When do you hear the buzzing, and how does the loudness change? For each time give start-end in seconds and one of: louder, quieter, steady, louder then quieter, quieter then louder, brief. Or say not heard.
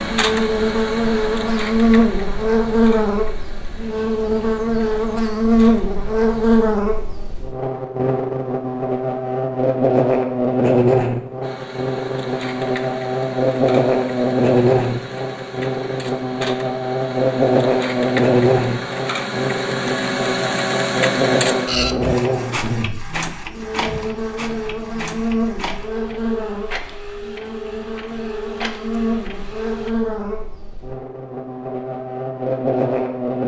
0.0-33.4 quieter.